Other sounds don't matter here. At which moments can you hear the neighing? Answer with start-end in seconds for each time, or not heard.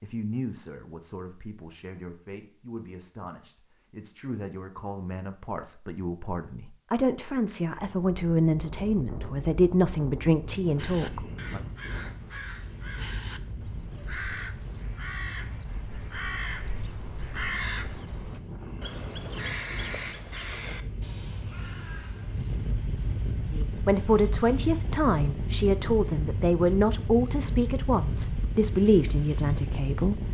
not heard.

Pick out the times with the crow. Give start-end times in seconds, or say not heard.
10.8-22.6.